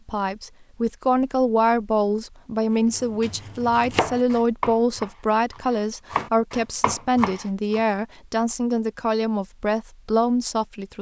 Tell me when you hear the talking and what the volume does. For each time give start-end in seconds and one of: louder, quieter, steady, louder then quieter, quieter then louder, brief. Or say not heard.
0.1-10.9 steady.